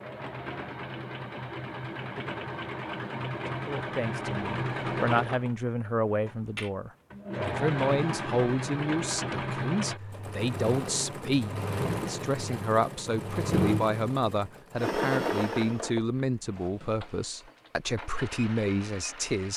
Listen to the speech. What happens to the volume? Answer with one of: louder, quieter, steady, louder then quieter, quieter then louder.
steady.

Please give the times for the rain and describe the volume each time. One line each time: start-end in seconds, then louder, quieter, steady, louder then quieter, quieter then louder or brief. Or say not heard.
not heard.